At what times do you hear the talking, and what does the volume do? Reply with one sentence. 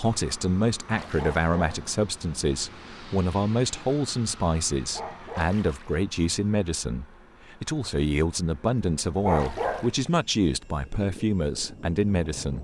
The talking can be heard from 0.0 to 12.5 s, at a steady volume.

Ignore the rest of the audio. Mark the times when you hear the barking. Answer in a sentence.
You can hear the barking from 1.1 to 1.8 s, from 4.9 to 5.5 s and from 9.2 to 9.9 s.